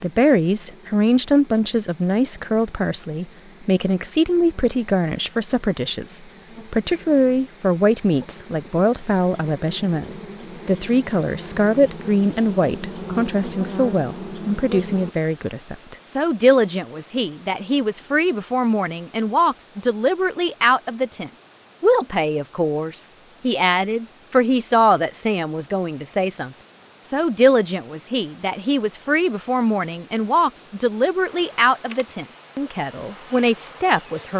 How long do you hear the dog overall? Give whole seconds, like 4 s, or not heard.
not heard.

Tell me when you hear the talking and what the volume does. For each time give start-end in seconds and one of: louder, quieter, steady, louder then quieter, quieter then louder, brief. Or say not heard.
0.0-34.3 steady.